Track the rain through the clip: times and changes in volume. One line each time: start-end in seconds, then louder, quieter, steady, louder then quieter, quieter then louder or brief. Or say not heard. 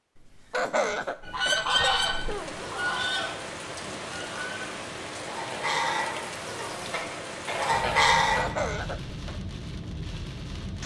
2.0-10.8 steady.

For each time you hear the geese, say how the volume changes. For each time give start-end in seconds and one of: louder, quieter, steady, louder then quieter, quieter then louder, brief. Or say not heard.
1.2-8.4 quieter then louder.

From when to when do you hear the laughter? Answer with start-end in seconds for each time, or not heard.
0.1-2.6, 8.2-9.4.